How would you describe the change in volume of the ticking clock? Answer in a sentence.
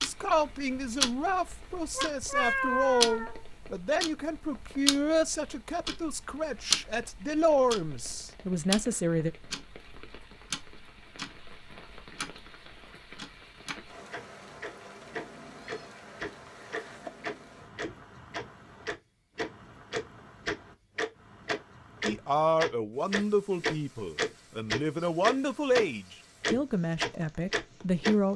The loudness of the ticking clock goes down, then up.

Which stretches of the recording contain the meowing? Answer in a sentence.
You can hear the meowing from 1.9 to 3.4 s and from 15.6 to 17.1 s.